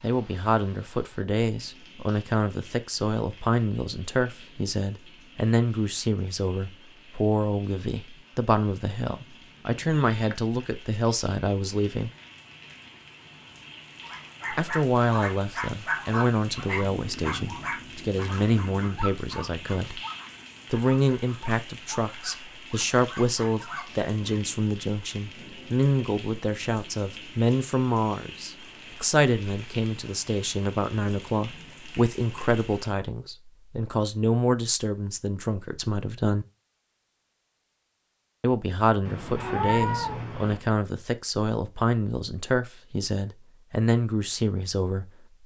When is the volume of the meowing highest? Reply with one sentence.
The loudest moment of the meowing is at 40 seconds.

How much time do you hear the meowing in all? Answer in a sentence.
You can hear the meowing for 2 seconds altogether.